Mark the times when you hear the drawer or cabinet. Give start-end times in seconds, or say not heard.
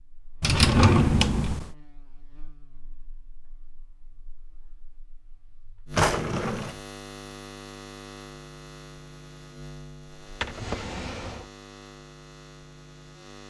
0.4-1.7, 5.9-6.8, 10.2-11.4.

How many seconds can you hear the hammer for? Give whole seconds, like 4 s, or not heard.
not heard.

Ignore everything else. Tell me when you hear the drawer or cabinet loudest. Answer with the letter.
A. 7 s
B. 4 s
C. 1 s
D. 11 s
C.